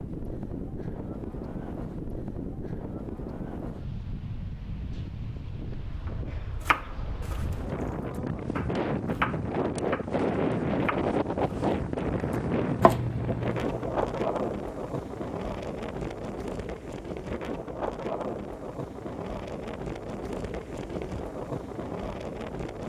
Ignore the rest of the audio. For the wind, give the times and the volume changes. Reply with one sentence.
The wind can be heard from 0.0 to 22.8 s, getting louder then quieter.